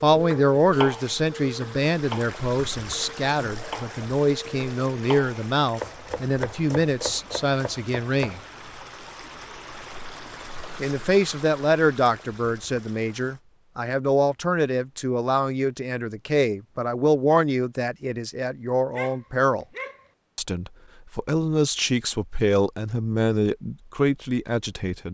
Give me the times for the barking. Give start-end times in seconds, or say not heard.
18.9-20.1.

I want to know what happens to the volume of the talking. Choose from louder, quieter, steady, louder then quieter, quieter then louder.
steady.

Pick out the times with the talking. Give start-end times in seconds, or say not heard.
0.0-8.4, 10.8-19.6, 20.4-25.0.